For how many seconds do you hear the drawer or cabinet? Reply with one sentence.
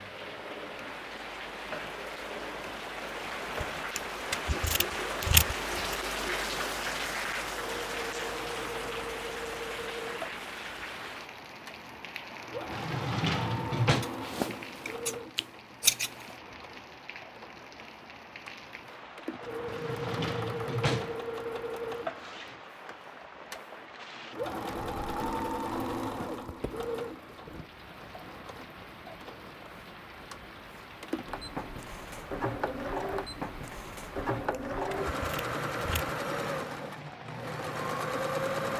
You can hear the drawer or cabinet for 3 seconds altogether.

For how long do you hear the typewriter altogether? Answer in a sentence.
You can't hear the typewriter here.